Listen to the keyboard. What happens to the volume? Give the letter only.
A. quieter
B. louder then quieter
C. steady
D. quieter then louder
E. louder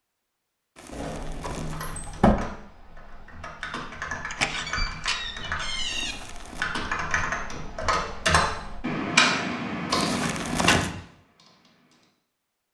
E.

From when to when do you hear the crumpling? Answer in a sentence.
You can hear the crumpling from 0.8 to 2.2 s, from 5.8 to 6.7 s and from 9.9 to 10.9 s.